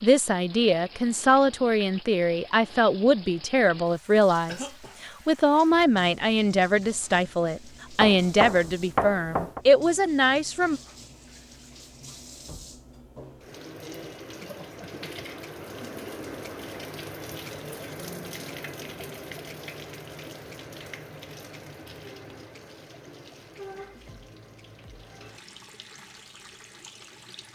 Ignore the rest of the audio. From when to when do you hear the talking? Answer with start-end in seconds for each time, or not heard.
0.0-10.8.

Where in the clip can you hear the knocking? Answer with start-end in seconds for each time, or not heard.
8.0-9.6.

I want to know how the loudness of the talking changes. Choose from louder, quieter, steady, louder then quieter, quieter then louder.
steady.